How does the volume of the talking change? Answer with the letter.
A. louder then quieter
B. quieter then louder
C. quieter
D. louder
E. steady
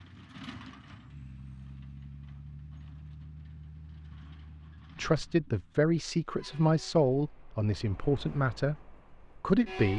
C.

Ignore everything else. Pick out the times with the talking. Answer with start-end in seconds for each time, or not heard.
5.0-9.9.